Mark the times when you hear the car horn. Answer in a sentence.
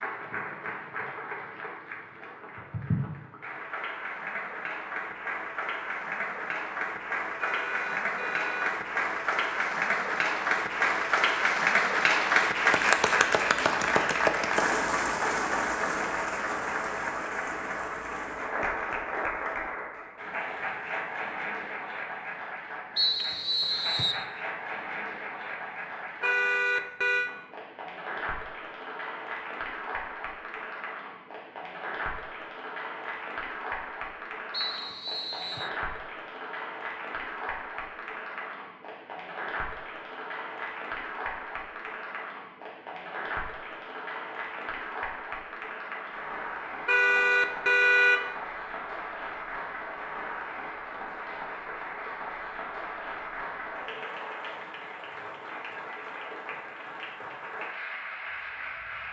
The car horn can be heard from 7.4 to 8.8 s, from 26.2 to 27.3 s and from 46.9 to 48.2 s.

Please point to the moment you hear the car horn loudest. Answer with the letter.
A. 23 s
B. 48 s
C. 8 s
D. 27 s
B.